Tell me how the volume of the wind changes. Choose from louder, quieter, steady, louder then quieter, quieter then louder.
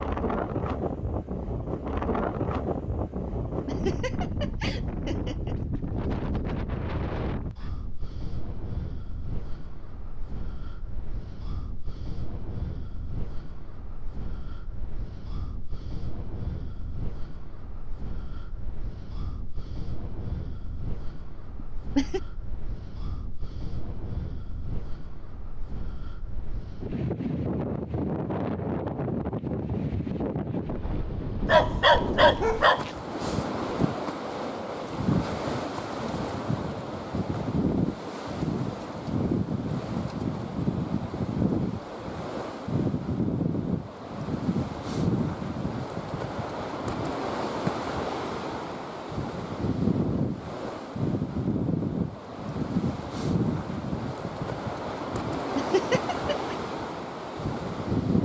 quieter then louder.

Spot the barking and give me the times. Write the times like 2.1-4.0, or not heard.
31.4-32.9.